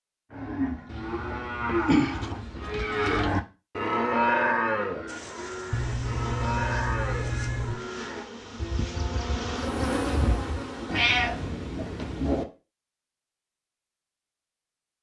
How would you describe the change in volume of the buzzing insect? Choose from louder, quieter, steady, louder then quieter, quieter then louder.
louder.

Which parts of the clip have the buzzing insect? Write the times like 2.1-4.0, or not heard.
5.0-11.6.